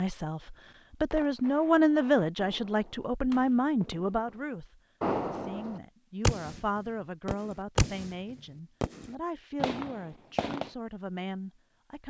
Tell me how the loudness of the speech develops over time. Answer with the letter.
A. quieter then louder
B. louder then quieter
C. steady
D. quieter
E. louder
D.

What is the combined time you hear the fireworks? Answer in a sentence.
You can hear the fireworks for 10 seconds altogether.